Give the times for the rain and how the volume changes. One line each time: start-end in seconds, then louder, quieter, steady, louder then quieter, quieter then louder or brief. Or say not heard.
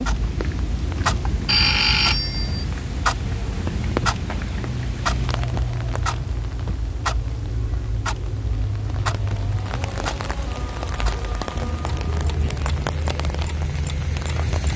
0.0-14.7 quieter then louder.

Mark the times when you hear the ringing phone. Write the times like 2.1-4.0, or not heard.
1.4-2.6.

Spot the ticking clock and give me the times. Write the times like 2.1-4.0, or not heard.
0.0-14.7.